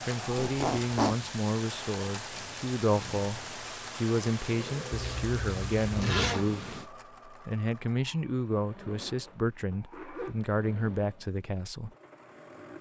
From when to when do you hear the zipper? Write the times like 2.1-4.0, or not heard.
0.3-1.1, 4.9-6.5, 8.8-10.3.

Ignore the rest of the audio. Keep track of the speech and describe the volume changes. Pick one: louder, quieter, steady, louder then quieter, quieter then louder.
steady.